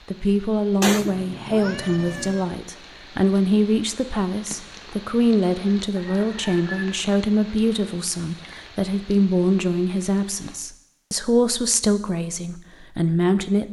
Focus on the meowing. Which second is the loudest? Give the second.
1 s.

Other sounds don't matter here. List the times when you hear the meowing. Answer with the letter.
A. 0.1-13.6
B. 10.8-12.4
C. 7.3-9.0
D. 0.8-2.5
D.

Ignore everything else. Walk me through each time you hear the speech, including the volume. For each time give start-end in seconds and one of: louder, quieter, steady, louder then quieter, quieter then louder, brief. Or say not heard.
0.1-13.6 steady.